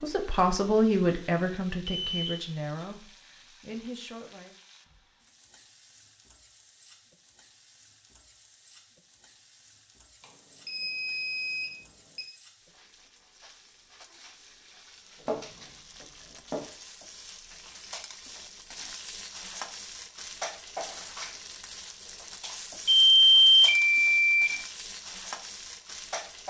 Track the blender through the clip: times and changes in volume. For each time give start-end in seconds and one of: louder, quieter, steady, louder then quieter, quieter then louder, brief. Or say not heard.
not heard.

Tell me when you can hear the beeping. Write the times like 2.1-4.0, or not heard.
1.9-2.9, 10.2-12.2, 22.9-24.5.